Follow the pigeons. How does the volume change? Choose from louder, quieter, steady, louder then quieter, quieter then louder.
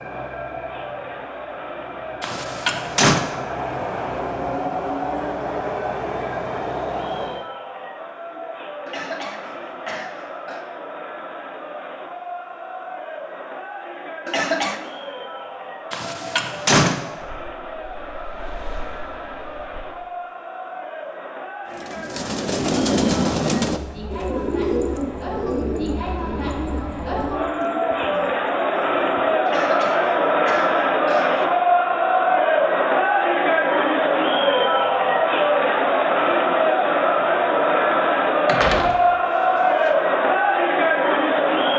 quieter.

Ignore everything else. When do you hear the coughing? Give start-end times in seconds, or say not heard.
8.8-10.7, 14.2-14.8, 29.4-31.4.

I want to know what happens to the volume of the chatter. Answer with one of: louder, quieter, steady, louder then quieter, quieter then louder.
louder.